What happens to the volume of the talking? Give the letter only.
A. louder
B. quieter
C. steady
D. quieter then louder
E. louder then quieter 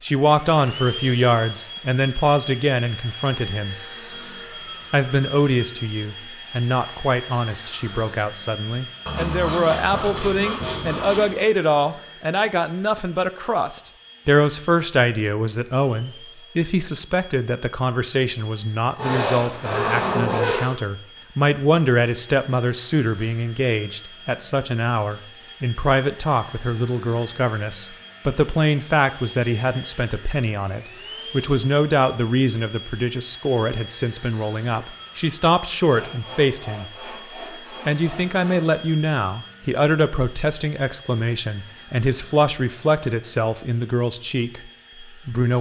C.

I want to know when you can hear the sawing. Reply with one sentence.
The sawing can be heard from 9.1 to 11.4 s, from 18.9 to 20.8 s and from 35.9 to 38.8 s.